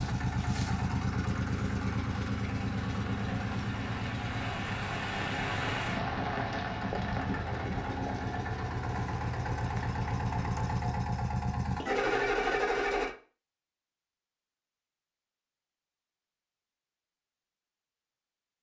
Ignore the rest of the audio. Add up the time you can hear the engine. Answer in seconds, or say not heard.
13 s.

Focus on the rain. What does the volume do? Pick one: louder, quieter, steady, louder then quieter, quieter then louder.
louder then quieter.